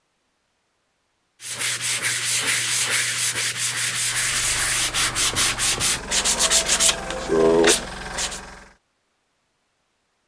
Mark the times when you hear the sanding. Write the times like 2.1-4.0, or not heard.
1.4-8.4.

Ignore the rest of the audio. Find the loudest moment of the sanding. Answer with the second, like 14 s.
8 s.